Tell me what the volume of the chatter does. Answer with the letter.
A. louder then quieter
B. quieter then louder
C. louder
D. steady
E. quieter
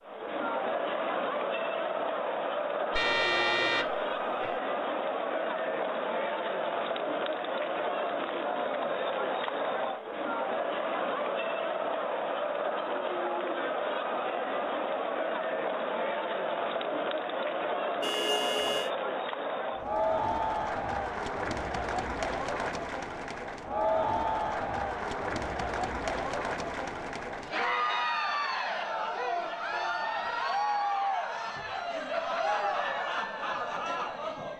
D.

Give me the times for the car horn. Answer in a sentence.
The car horn can be heard from 2.9 to 4.6 s, from 18.0 to 18.9 s and from 29.7 to 30.8 s.